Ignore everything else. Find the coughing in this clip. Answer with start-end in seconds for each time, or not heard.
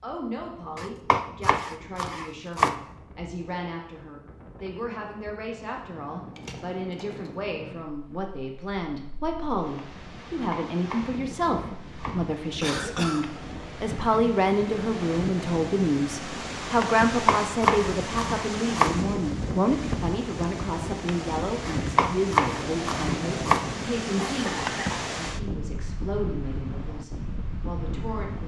6.3-7.3, 12.6-13.2, 24.1-25.1.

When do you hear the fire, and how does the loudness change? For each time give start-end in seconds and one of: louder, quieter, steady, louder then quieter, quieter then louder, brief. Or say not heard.
not heard.